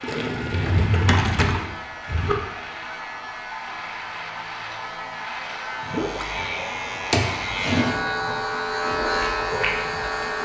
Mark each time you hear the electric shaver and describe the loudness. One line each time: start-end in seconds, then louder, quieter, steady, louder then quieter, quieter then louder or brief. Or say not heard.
0.0-10.4 louder.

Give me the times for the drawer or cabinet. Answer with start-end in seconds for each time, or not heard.
0.5-2.4, 7.1-8.0.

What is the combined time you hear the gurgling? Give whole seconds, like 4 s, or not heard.
2 s.